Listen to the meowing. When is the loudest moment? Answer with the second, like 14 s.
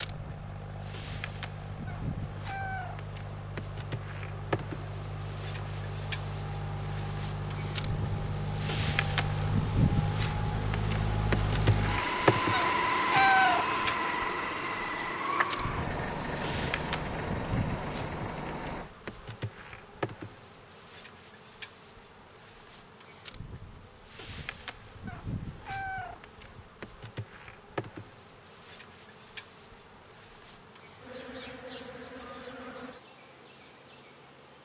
13 s.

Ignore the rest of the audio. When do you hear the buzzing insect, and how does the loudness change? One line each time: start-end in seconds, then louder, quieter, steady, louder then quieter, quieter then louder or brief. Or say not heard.
0.0-34.6 louder then quieter.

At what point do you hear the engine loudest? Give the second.
13 s.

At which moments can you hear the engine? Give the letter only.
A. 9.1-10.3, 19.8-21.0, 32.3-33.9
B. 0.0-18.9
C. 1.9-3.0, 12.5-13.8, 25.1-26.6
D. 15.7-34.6
B.